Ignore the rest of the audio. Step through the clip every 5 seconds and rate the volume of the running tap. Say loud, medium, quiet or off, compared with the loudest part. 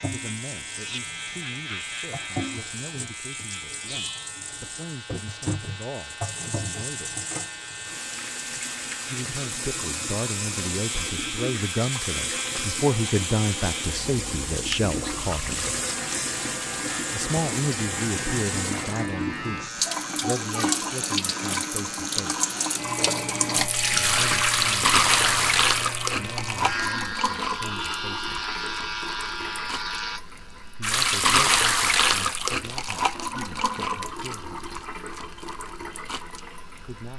quiet, medium, medium, medium, loud, loud, loud, quiet.